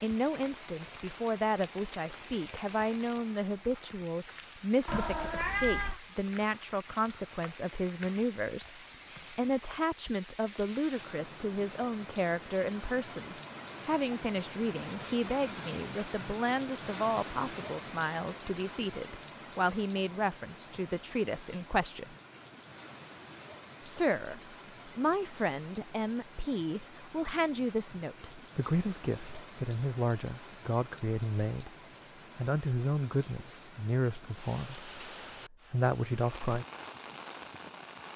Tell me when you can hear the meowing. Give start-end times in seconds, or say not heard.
4.8-6.0.